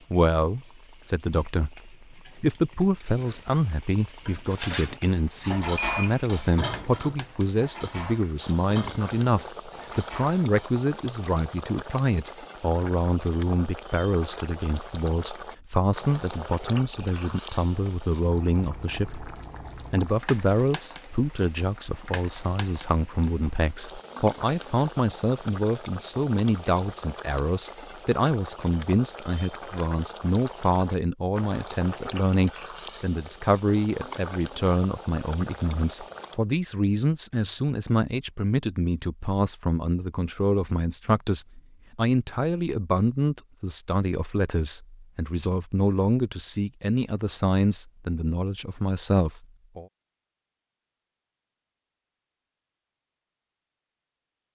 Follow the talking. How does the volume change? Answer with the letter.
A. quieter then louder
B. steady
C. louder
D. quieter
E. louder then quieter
B.